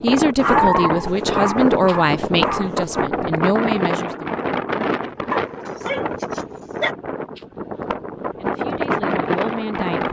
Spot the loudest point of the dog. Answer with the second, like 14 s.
1 s.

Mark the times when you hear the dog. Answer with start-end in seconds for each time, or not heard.
0.4-3.0, 5.3-7.0.